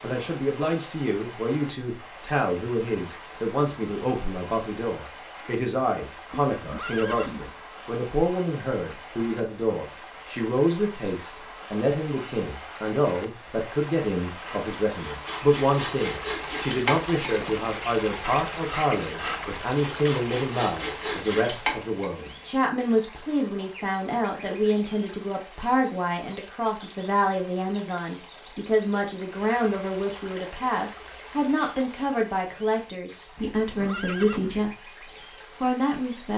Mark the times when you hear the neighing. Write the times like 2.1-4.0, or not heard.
6.3-7.6, 33.6-34.7.